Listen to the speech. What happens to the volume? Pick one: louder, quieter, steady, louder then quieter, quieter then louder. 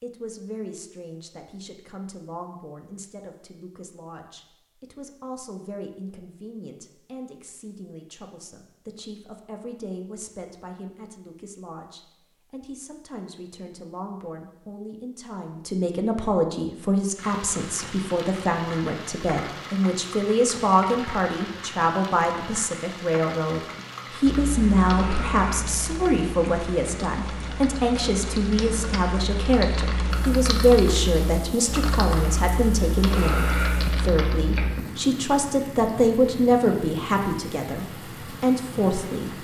louder.